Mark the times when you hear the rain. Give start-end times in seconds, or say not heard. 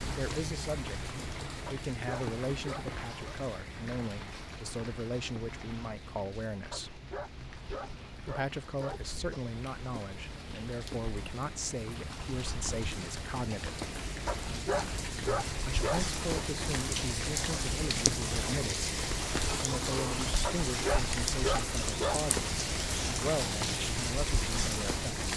0.0-25.3.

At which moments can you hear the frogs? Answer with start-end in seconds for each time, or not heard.
not heard.